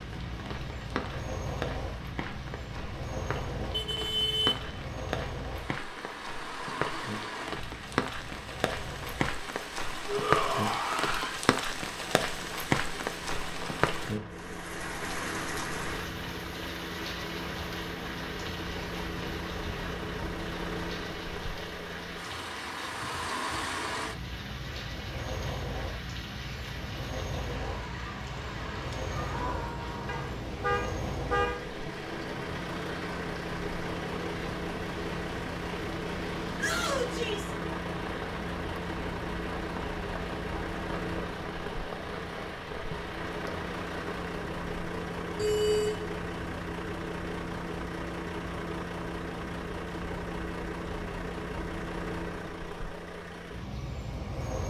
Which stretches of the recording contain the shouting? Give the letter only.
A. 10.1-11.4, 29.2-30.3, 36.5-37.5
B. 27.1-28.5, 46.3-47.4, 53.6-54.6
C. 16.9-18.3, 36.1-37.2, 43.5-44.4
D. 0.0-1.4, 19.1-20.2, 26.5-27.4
A.